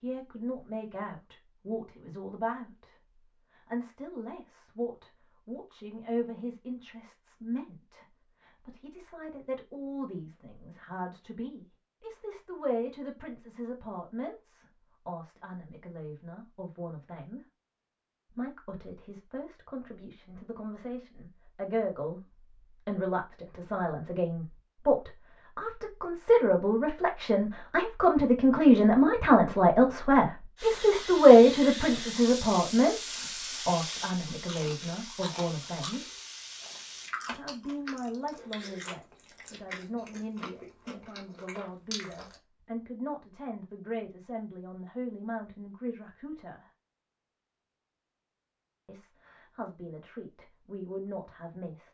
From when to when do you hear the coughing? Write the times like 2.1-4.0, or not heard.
not heard.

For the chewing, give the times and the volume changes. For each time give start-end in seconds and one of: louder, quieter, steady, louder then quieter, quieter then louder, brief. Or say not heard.
34.3-42.4 steady.